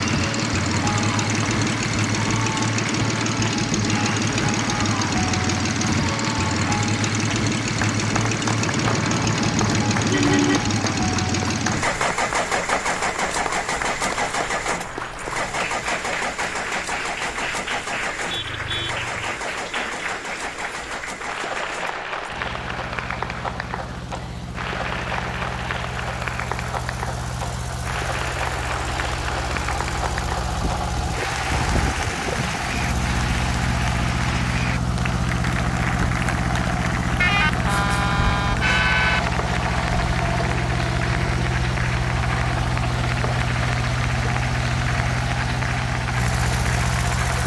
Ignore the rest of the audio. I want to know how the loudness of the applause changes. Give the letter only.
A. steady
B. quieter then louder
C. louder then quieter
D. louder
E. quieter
A.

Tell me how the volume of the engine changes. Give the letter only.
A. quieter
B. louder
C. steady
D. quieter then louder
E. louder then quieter
D.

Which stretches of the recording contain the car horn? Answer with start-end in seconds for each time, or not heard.
8.6-10.6, 18.3-19.1, 37.2-39.2.